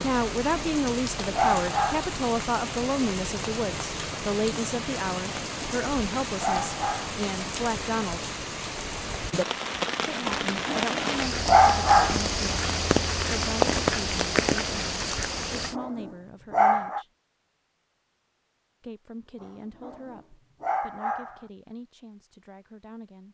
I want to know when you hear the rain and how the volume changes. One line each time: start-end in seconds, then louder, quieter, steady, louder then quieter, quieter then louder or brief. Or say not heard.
0.0-15.8 louder.